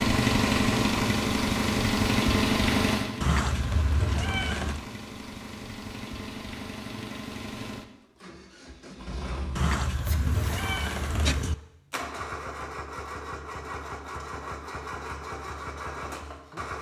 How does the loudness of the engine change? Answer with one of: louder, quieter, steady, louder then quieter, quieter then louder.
quieter.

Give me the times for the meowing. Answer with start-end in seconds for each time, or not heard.
3.2-4.8, 9.6-11.6.